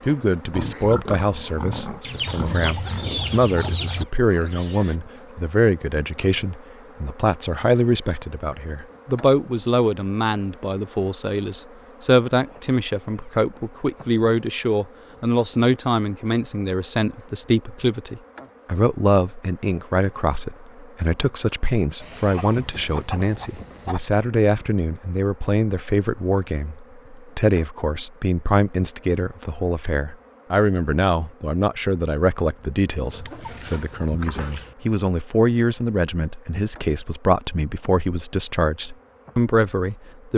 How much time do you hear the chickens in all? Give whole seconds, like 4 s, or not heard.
6 s.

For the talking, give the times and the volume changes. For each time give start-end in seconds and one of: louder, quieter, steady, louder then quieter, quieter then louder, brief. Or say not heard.
0.1-40.3 steady.